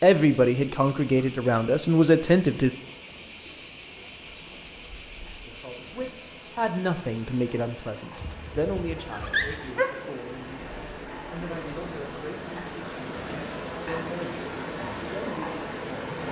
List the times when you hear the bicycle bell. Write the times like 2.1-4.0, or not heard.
not heard.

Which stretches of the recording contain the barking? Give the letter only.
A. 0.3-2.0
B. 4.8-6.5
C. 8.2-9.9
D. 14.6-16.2
C.